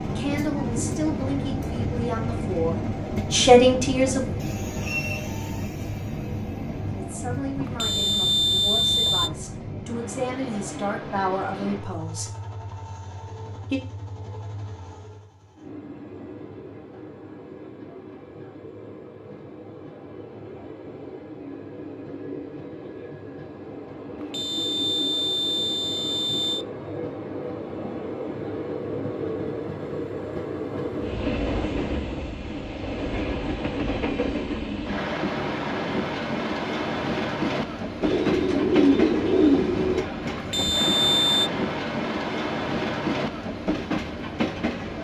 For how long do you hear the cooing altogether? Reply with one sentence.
The cooing can be heard for 2 seconds in total.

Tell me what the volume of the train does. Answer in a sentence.
The volume of the train goes down, then up.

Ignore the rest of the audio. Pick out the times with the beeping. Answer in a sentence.
The beeping can be heard from 7.7 to 9.3 s, from 24.2 to 26.6 s and from 40.4 to 41.5 s.